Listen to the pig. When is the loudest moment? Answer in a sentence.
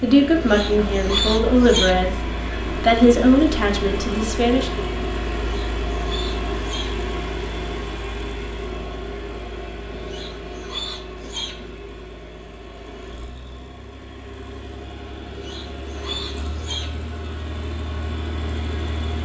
The loudest moment of the pig is at 1 second.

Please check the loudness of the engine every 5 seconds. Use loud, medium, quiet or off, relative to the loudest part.
loud, loud, medium, medium.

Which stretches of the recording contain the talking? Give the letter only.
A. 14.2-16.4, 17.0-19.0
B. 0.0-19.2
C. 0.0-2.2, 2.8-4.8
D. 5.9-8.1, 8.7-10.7
C.